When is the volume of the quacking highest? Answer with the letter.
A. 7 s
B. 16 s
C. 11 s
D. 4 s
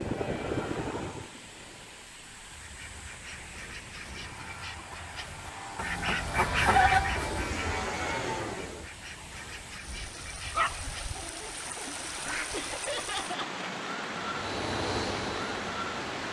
A.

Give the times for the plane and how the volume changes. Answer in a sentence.
You can hear the plane briefly from 0.0 to 2.1 s; from 4.0 to 8.9 s, getting louder; and briefly from 14.2 to 16.2 s.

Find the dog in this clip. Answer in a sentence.
The dog can be heard from 10.4 to 11.9 s.